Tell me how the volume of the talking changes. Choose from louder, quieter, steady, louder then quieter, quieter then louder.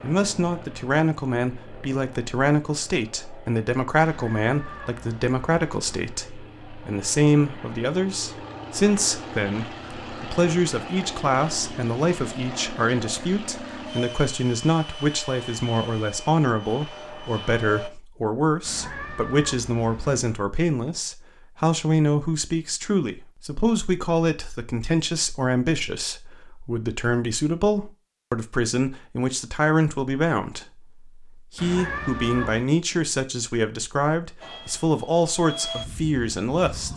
steady.